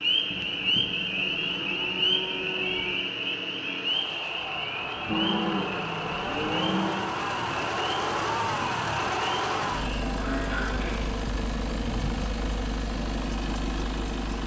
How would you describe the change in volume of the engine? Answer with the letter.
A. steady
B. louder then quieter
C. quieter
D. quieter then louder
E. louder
E.